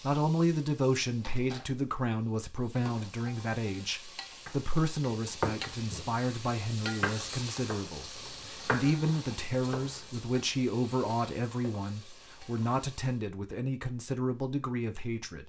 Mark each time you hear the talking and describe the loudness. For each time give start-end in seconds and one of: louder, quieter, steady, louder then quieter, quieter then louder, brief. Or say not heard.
0.0-15.4 steady.